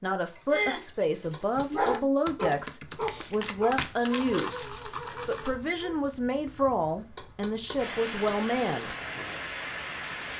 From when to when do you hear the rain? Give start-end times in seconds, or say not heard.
2.8-10.3.